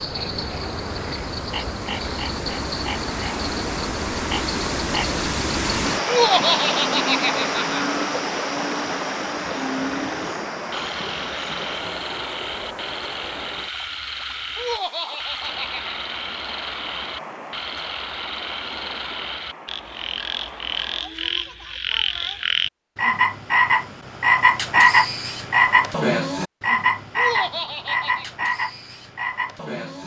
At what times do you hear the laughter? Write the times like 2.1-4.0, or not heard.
6.0-7.8, 14.6-15.9, 27.1-28.2.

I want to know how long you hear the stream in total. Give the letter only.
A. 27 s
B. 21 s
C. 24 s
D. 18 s
B.